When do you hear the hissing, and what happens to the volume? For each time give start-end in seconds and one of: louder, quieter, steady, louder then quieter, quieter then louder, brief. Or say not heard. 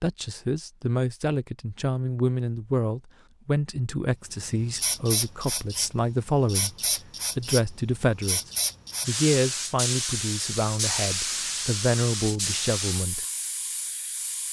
4.3-14.4 steady.